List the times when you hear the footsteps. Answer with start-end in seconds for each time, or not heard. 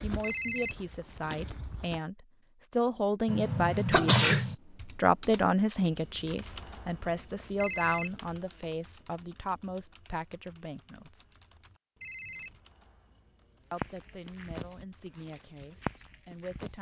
0.0-2.0, 13.7-16.7.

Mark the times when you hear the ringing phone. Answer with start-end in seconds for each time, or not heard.
0.2-0.8, 7.6-8.2, 12.0-12.6.